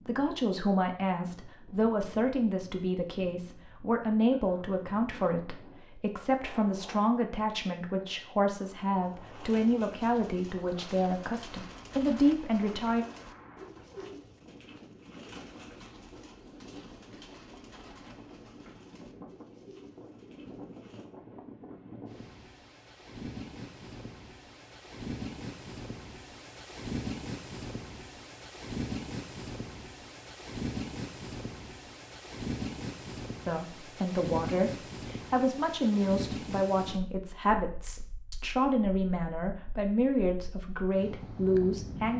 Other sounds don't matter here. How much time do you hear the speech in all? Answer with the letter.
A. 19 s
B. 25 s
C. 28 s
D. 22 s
D.